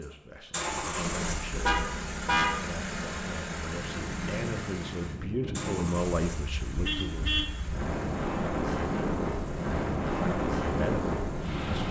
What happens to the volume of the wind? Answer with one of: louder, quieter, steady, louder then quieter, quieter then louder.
louder.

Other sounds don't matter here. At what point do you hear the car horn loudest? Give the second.
2 s.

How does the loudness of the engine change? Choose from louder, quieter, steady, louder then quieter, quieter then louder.
quieter.